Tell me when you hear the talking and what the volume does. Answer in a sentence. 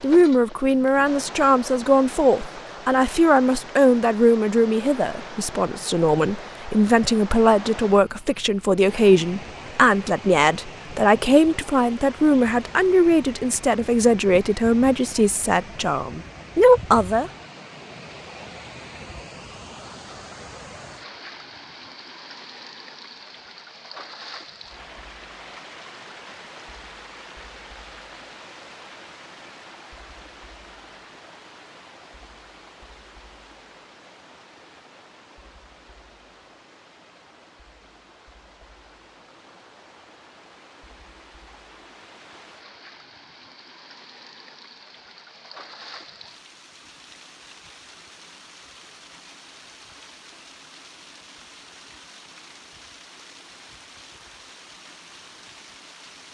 You can hear the talking from 0.0 to 17.3 s, at a steady volume.